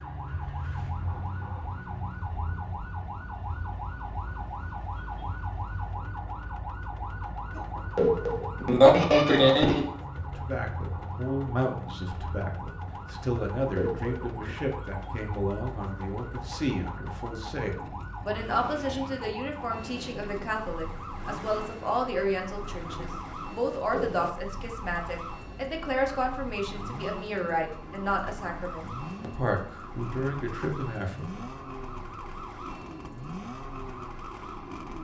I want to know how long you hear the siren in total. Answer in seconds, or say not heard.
35 s.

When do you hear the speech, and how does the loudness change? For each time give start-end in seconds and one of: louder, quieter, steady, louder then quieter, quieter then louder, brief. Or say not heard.
10.3-31.4 steady.